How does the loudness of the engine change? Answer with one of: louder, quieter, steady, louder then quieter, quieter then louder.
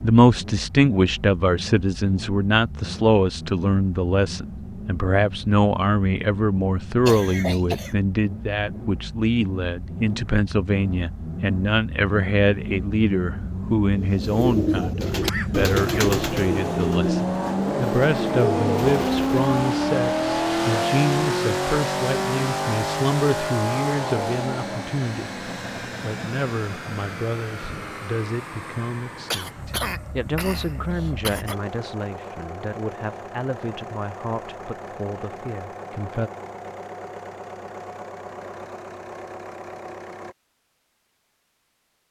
louder then quieter.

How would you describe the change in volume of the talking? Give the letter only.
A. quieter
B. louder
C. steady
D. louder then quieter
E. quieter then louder
A.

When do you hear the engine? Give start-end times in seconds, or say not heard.
0.0-40.4.